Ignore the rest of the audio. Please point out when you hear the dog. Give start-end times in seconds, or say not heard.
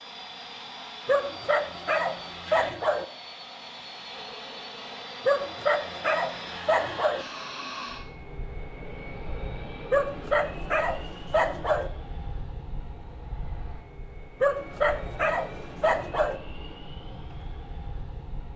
1.1-3.0, 5.2-7.2, 9.9-11.9, 14.4-16.4.